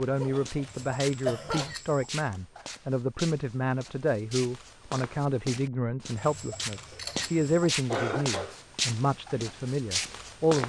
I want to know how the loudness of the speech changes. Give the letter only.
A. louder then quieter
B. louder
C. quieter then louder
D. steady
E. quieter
D.